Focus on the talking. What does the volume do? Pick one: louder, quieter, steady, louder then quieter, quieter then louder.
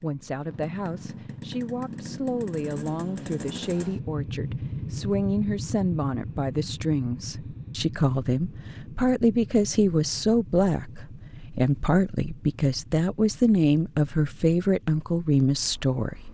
louder.